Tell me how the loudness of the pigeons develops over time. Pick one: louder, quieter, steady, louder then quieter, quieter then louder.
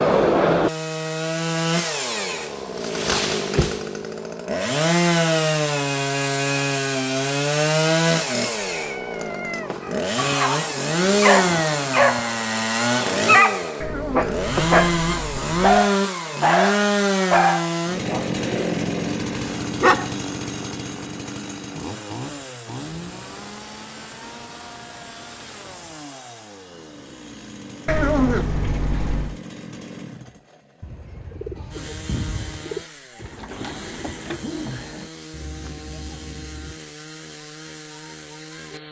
quieter.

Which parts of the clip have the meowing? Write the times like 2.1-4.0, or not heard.
8.4-9.8, 13.8-15.9, 27.9-29.4.